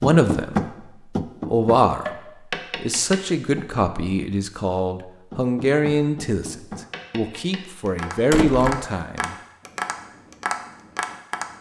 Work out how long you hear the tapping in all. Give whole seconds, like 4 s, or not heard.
10 s.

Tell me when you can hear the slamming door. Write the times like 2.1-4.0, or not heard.
8.3-8.8.